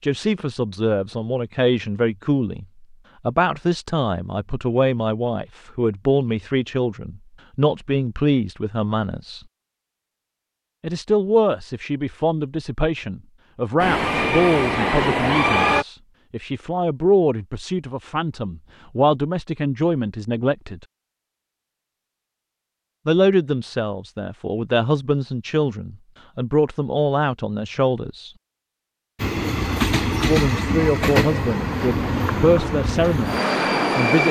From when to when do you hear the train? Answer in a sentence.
You can hear the train from 13.8 to 15.8 s and from 29.1 to 34.2 s.